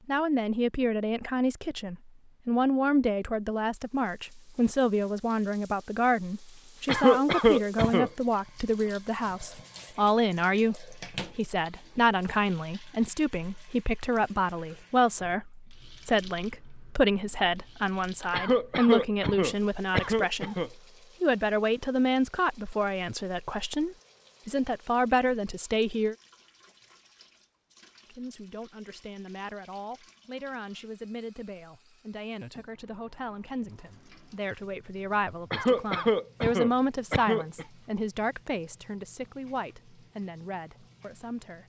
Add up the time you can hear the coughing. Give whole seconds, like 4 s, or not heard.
6 s.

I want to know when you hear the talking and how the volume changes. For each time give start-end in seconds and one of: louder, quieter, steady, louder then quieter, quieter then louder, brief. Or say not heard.
0.1-26.1 steady
28.1-41.6 louder then quieter.